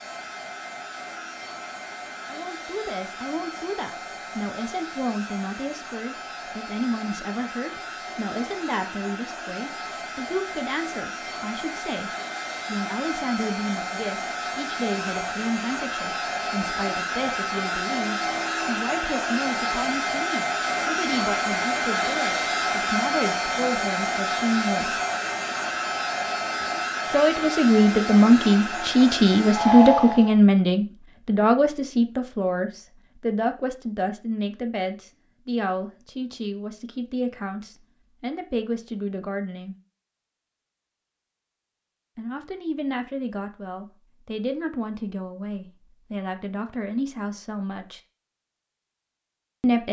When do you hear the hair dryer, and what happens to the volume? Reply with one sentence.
The hair dryer can be heard from 0.0 to 30.4 s, getting louder.